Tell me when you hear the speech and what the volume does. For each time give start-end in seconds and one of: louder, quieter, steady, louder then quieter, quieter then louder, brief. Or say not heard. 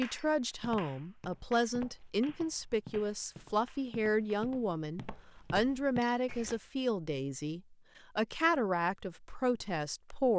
0.0-10.3 steady.